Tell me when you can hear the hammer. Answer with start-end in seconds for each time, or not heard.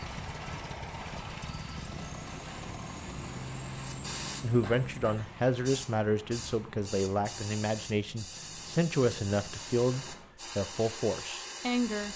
not heard.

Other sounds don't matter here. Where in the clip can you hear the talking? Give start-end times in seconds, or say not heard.
4.4-12.1.